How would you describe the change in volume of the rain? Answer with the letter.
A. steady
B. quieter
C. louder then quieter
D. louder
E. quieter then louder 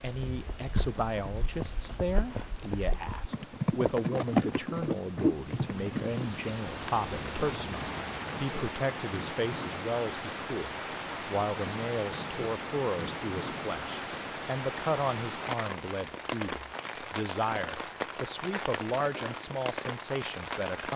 D.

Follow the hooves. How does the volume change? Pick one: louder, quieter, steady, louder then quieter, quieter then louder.
louder then quieter.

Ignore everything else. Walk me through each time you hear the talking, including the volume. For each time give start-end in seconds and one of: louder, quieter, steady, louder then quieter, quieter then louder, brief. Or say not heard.
0.0-20.9 steady.